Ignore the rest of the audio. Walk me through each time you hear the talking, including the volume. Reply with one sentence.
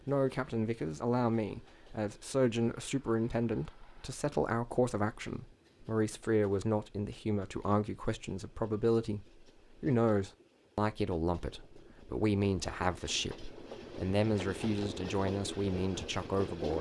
You can hear the talking from 0.1 to 16.7 s, at a steady volume.